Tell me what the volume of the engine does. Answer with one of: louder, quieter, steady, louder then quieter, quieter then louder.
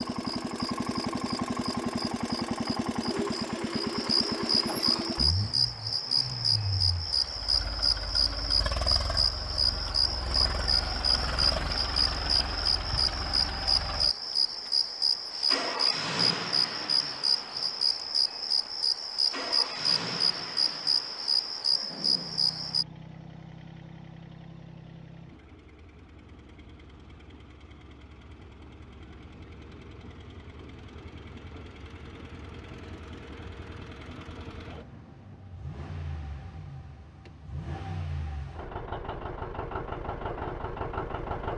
quieter then louder.